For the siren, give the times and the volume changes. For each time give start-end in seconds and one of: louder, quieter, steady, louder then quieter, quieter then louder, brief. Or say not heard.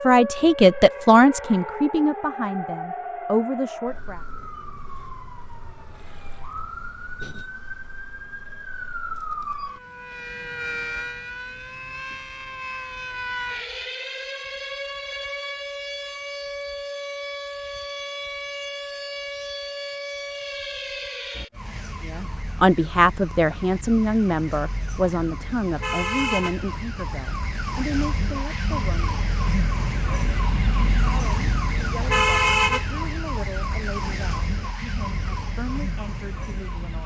0.0-37.0 louder.